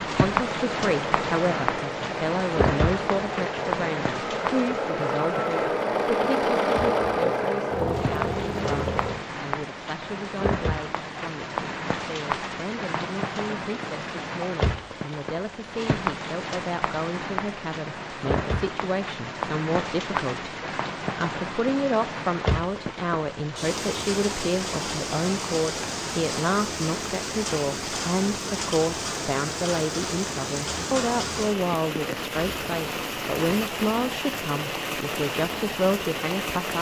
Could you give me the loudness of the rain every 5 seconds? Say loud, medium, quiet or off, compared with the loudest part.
loud, medium, loud, loud, loud, loud, loud, loud.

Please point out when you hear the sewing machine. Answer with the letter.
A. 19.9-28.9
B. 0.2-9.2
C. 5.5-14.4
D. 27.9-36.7
B.